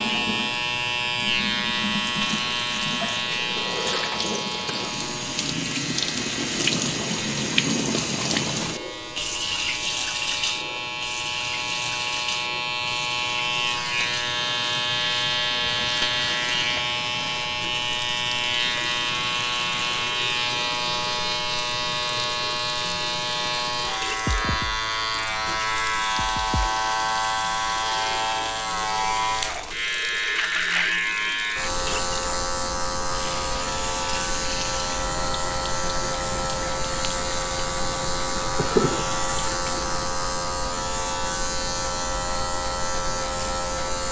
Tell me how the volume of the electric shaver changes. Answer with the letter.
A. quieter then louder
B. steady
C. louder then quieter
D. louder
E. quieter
B.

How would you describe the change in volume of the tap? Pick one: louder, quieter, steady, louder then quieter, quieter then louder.
quieter.